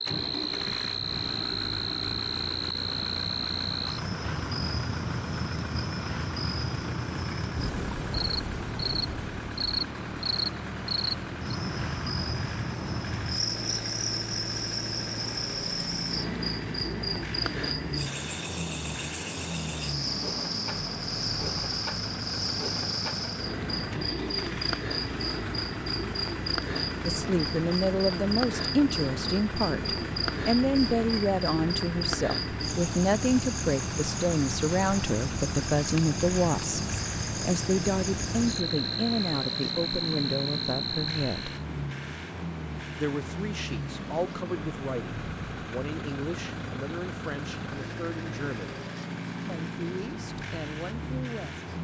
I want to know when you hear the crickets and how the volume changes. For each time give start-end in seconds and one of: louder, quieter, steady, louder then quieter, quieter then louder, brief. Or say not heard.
0.0-41.5 steady.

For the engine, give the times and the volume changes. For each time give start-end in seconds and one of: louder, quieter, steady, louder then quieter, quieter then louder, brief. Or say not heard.
0.0-51.7 steady.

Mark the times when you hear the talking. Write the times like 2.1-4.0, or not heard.
27.1-41.5, 43.0-48.8, 49.5-51.7.